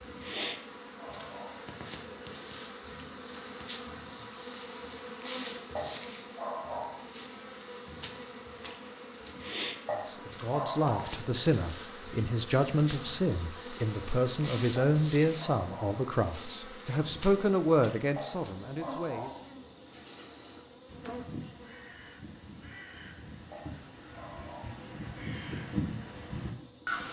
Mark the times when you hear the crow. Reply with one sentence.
You can hear the crow from 19.8 to 27.0 s.